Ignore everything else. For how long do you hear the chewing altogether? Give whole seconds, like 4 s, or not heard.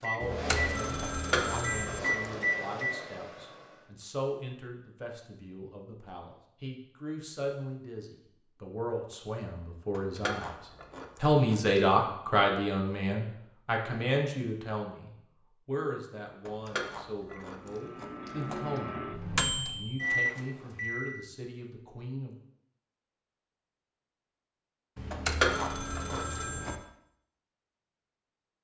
7 s.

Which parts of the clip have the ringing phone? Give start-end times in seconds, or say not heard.
0.2-2.0, 24.9-26.8.